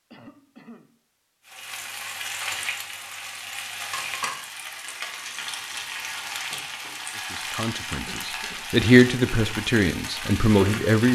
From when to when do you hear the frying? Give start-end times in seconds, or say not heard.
1.4-11.1.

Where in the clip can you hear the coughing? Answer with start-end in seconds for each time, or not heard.
0.1-0.9, 7.8-8.7.